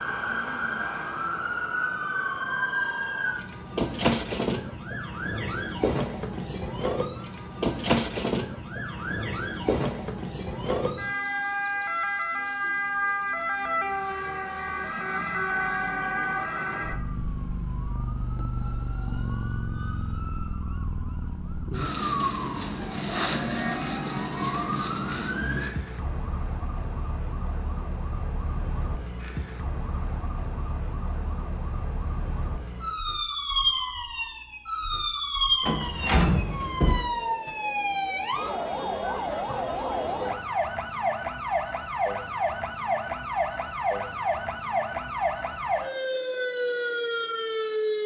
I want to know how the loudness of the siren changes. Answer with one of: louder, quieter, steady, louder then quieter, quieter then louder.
steady.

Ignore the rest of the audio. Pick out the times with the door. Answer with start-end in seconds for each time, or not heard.
35.6-37.0.